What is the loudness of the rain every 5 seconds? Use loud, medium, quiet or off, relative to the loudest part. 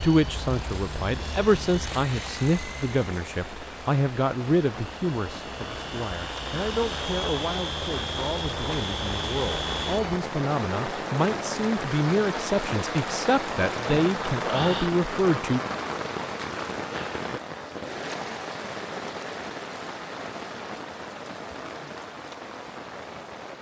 medium, medium, loud, loud, medium.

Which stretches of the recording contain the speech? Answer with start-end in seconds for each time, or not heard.
0.0-15.6.